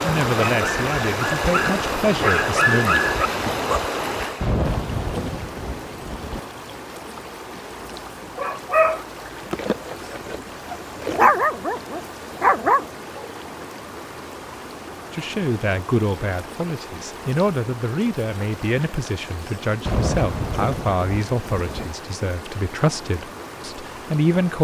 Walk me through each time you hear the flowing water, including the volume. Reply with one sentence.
The flowing water can be heard from 0.0 to 24.5 s, getting quieter.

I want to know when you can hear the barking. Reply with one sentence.
You can hear the barking from 0.2 to 3.8 s and from 8.3 to 13.7 s.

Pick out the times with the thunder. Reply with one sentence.
The thunder can be heard from 4.4 to 6.4 s and from 19.9 to 21.9 s.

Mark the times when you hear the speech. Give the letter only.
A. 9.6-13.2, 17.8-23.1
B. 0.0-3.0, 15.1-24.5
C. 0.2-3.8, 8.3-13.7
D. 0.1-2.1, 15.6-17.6
B.